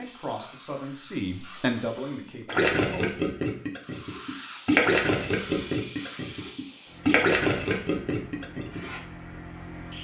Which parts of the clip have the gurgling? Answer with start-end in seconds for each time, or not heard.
2.5-8.8.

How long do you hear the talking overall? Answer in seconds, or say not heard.
3 s.